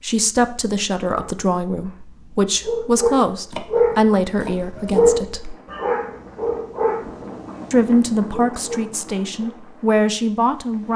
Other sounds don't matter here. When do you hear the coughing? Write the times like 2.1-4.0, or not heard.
not heard.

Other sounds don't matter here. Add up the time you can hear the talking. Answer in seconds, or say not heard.
9 s.